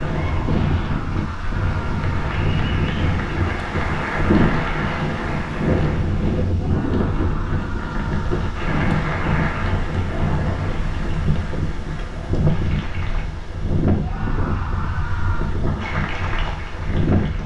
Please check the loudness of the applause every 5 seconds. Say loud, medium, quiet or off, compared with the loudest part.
loud, loud, medium, loud.